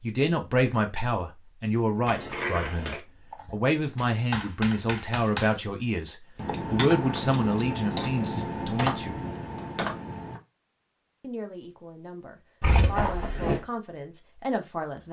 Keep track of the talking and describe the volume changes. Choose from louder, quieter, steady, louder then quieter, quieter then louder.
quieter.